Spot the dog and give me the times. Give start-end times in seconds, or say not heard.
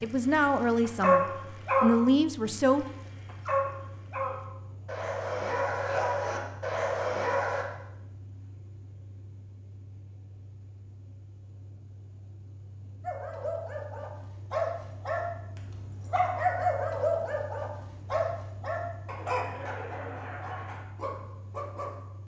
0.0-7.7, 13.0-21.9.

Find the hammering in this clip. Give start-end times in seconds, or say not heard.
not heard.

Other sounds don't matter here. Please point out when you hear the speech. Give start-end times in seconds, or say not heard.
0.0-2.9.